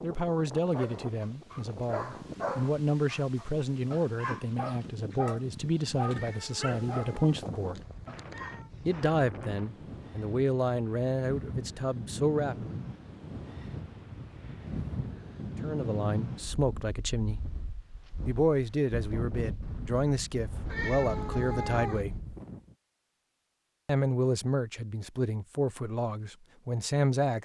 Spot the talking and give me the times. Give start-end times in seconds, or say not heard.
0.0-7.8, 8.8-12.8, 15.6-17.4, 18.2-22.2, 23.9-27.3.